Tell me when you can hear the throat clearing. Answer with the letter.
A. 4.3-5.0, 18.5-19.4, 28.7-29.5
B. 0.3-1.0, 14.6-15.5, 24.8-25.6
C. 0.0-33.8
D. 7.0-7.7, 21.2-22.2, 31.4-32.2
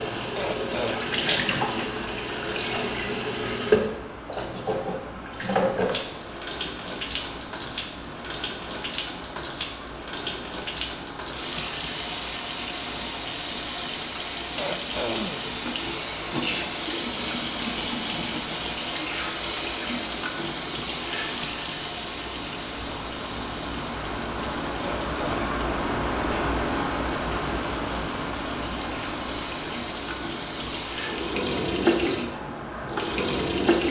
B.